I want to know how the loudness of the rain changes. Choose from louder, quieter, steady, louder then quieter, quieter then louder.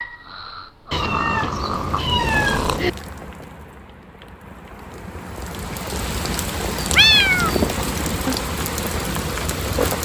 louder.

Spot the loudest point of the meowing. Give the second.
7 s.